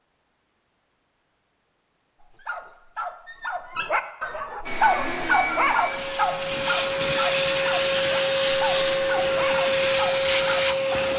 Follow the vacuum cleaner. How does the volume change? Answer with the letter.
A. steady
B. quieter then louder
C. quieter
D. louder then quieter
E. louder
E.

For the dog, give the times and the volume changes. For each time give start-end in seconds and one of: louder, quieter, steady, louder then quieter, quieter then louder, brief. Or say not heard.
2.2-10.7 louder then quieter.